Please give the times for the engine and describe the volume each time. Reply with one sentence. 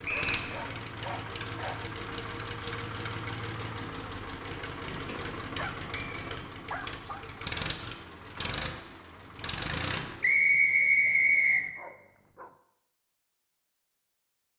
You can hear the engine from 0.0 to 10.3 s, at a steady volume.